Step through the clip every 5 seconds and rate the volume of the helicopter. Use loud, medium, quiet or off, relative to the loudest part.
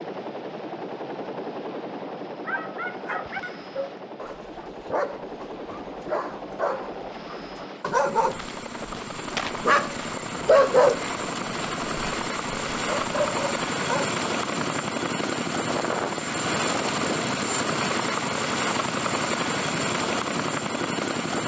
medium, medium, loud, loud, loud.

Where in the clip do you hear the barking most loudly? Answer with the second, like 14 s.
11 s.